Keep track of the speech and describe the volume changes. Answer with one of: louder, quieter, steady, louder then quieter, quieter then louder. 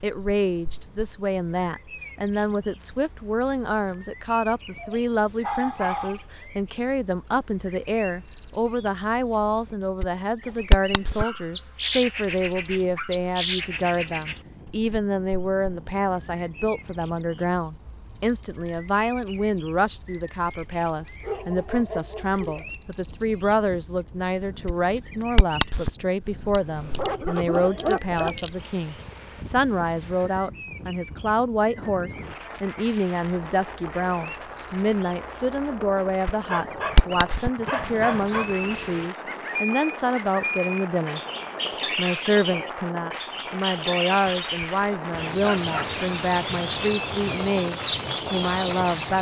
steady.